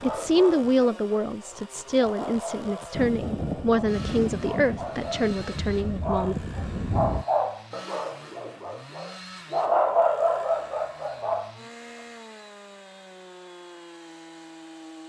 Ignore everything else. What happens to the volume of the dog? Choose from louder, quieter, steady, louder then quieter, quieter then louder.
louder.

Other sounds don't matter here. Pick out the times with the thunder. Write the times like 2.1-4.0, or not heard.
2.9-7.2.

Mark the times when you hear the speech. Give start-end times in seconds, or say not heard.
0.0-6.3.